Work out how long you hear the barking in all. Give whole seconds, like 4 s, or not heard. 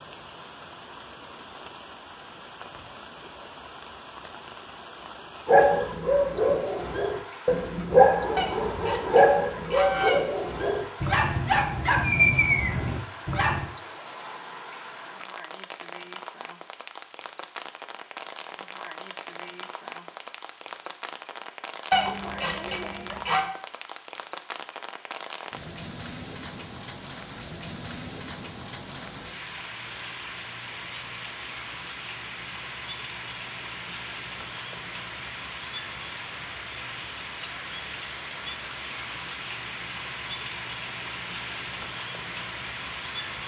8 s.